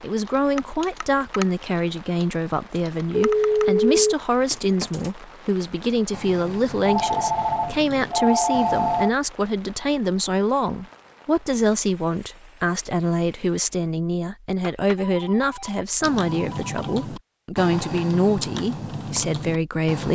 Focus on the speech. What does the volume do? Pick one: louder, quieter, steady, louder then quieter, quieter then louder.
steady.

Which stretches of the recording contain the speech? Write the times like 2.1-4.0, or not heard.
0.0-20.0.